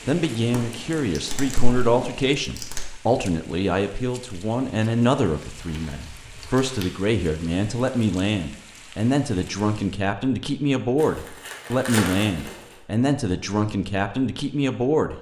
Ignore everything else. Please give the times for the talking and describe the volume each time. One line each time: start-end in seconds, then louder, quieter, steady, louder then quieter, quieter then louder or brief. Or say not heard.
0.1-15.1 steady.